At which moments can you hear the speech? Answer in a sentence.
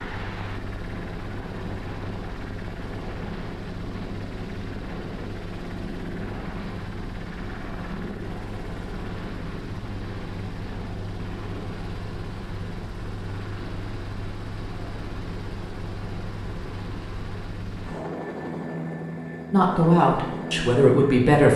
The speech can be heard from 19.5 to 21.5 s.